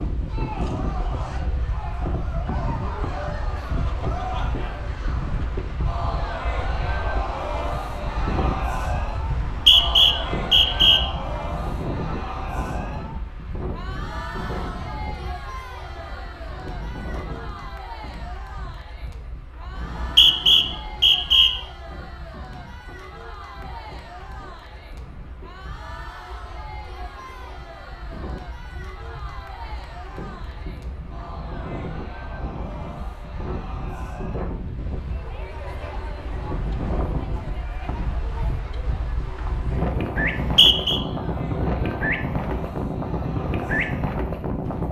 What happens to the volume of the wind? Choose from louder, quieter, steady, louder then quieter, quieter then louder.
quieter then louder.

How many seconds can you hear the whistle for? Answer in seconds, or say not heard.
4 s.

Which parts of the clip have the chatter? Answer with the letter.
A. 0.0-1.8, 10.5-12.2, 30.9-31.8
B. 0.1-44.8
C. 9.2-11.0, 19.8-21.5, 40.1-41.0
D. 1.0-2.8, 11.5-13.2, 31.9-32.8
B.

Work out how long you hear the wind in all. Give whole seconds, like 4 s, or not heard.
45 s.